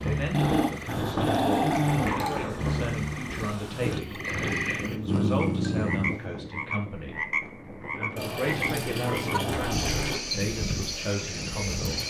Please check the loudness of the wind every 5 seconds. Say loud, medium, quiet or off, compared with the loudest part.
loud, medium, loud.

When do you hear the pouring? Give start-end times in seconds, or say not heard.
1.5-2.5, 4.2-4.8, 8.2-10.2.